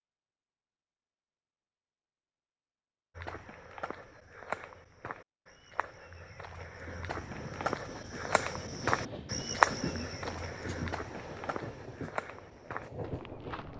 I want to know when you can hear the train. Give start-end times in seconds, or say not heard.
6.7-13.7.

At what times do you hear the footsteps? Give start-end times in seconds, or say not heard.
3.1-13.7.